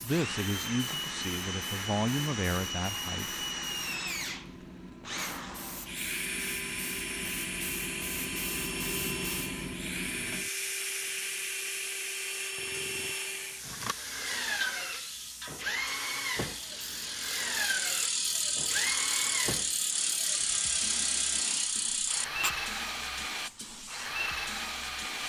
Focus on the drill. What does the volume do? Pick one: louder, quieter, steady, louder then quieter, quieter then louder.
steady.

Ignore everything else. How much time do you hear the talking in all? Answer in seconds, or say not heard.
3 s.